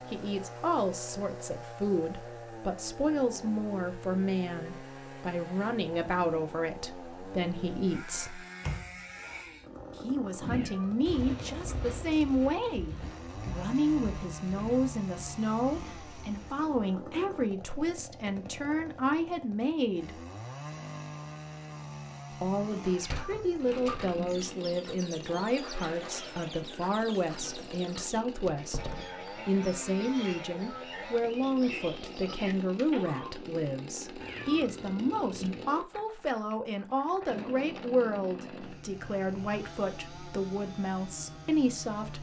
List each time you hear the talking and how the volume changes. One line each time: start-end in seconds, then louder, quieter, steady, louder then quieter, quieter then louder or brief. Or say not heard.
0.1-8.4 steady
9.9-20.2 steady
22.4-42.1 steady.